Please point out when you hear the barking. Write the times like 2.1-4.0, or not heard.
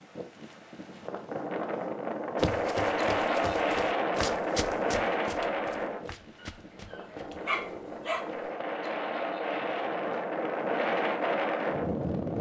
7.5-8.4.